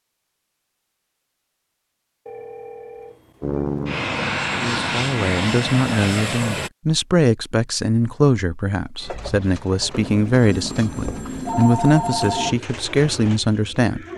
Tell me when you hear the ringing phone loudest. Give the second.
12 s.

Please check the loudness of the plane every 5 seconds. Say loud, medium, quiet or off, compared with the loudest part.
loud, loud, off.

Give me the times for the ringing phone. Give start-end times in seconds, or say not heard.
2.2-3.6, 9.9-12.6.